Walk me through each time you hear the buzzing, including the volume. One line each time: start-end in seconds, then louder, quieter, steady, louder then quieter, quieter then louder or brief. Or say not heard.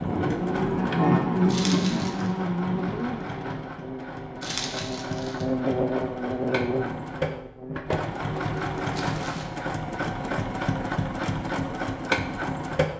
0.0-8.1 quieter then louder.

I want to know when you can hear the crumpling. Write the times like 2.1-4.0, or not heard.
1.4-2.3, 4.4-5.5, 8.9-9.6.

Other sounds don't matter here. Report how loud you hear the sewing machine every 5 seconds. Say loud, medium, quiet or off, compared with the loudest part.
medium, loud, loud.